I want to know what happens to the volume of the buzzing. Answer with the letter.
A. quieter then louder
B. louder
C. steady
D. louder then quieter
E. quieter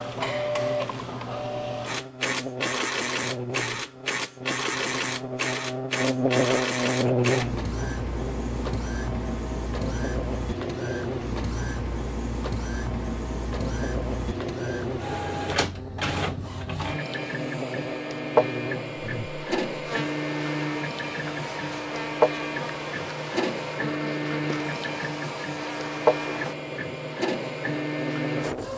D.